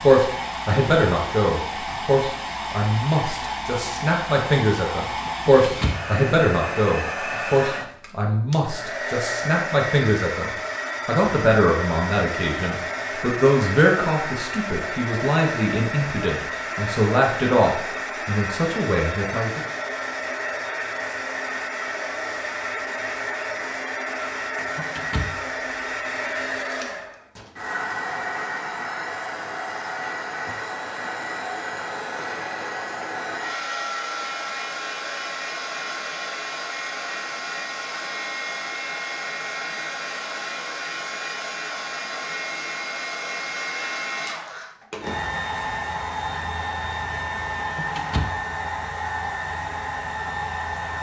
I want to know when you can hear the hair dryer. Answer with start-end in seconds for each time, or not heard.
0.0-50.9.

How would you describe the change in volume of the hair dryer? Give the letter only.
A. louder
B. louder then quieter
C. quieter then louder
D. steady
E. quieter
D.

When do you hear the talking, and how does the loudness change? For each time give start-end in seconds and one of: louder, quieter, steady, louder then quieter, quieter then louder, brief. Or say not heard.
0.0-19.6 steady.